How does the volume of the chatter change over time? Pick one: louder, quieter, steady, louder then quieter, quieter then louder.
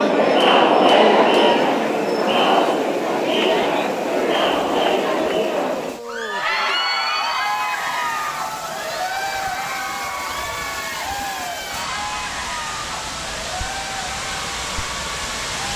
quieter.